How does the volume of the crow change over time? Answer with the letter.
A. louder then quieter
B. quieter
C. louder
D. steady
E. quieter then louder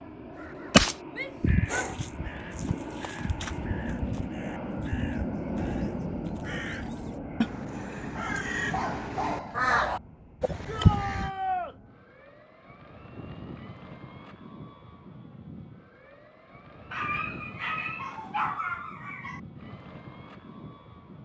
E.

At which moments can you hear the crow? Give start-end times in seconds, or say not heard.
0.4-11.3.